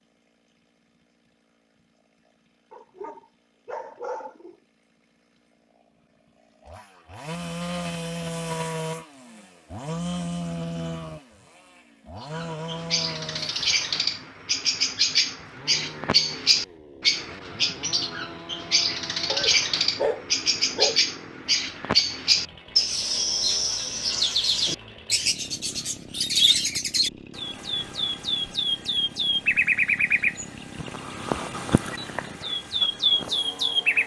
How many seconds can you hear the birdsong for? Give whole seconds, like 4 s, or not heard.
22 s.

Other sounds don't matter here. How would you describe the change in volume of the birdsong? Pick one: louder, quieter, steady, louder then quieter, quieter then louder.
steady.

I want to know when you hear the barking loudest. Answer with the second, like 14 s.
20 s.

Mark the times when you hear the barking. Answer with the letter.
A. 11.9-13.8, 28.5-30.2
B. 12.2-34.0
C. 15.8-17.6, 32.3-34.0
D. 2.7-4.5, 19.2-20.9
D.